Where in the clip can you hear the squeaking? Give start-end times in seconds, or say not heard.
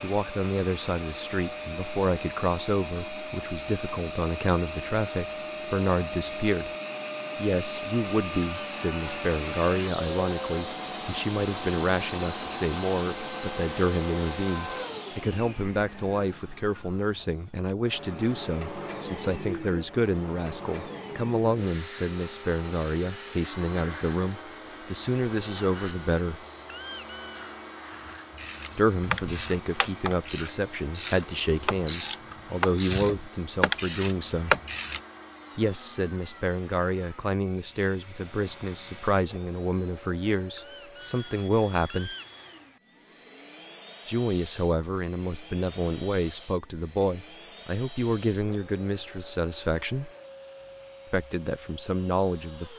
8.3-9.3, 25.3-27.6, 40.5-42.3.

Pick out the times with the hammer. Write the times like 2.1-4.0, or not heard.
not heard.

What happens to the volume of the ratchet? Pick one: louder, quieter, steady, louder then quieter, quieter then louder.
louder.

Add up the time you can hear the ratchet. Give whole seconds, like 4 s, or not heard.
7 s.